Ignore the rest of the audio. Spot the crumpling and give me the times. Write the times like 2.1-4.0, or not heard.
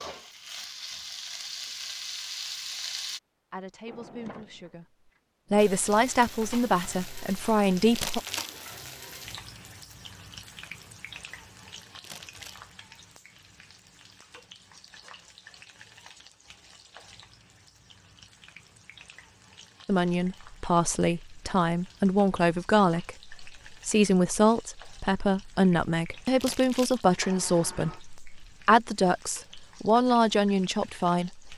8.0-8.6, 12.0-12.7, 26.4-27.1.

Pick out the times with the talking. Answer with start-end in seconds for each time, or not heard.
3.5-8.2, 19.9-31.5.